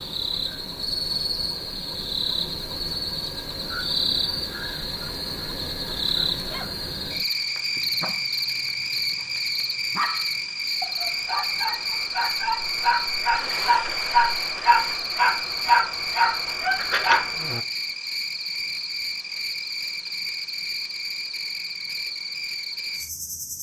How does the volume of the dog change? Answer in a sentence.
The volume of the dog goes up.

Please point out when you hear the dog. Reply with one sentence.
The dog can be heard from 6.3 to 17.6 s.